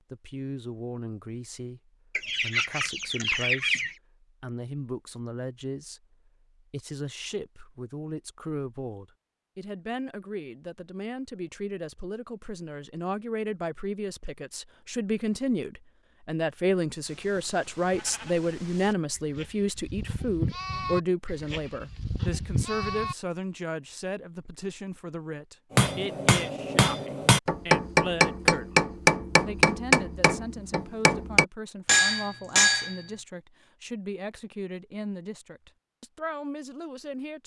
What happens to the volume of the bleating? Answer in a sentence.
The loudness of the bleating goes up.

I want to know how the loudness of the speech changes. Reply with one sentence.
The loudness of the speech goes up, then down.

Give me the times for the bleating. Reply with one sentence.
The bleating can be heard from 17.1 to 23.1 s.